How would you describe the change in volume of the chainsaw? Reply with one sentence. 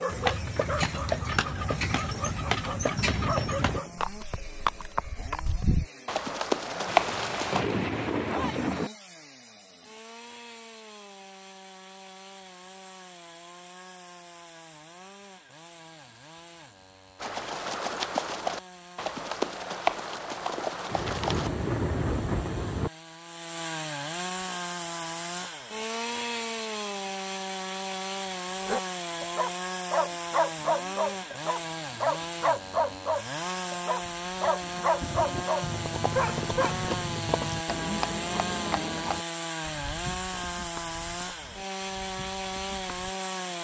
The volume of the chainsaw goes up.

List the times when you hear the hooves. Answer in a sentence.
You can hear the hooves from 0.1 to 7.7 s, from 17.2 to 21.5 s and from 35.6 to 43.1 s.